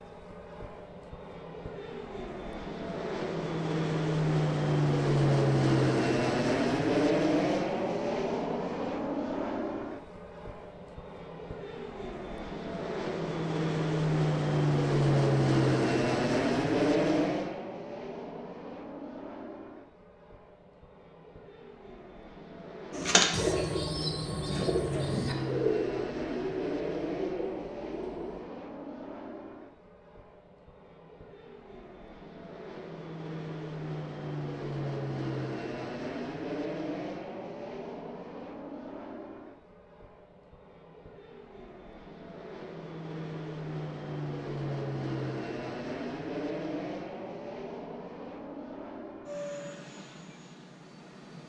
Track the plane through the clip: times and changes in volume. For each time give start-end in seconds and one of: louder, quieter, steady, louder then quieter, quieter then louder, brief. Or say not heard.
0.0-51.4 quieter.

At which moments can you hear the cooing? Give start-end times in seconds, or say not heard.
22.9-28.4.